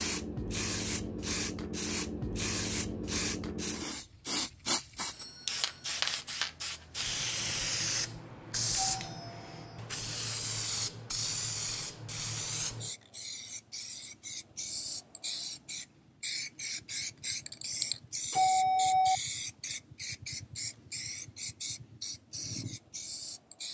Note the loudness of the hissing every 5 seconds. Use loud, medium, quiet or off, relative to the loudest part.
loud, loud, loud, loud, medium.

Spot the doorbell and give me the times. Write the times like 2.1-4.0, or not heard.
5.0-6.0, 8.7-9.7, 18.3-19.2.